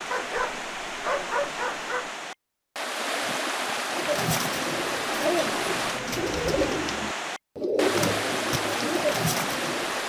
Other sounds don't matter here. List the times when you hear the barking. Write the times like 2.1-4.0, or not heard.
0.1-2.1.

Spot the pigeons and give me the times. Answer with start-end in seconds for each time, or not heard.
3.9-10.0.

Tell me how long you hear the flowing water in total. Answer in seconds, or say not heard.
10 s.